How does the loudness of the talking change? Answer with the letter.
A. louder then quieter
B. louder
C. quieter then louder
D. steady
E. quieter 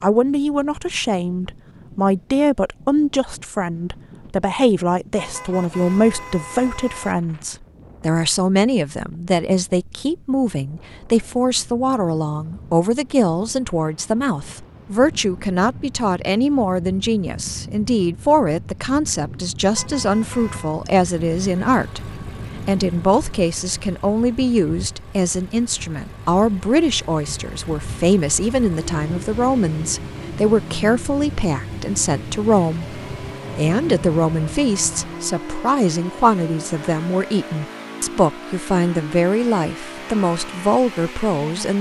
D.